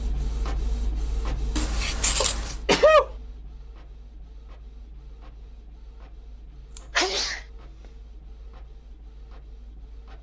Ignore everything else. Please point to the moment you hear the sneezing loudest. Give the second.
3 s.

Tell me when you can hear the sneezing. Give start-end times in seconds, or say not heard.
2.2-3.0, 7.0-7.4.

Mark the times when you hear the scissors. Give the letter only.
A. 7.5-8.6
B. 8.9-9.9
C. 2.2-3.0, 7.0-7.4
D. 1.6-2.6
D.